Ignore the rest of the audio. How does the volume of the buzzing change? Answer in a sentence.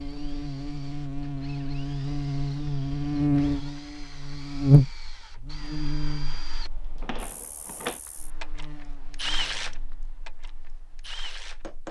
The loudness of the buzzing goes up, then down.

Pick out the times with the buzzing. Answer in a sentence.
You can hear the buzzing from 0.0 to 11.8 s.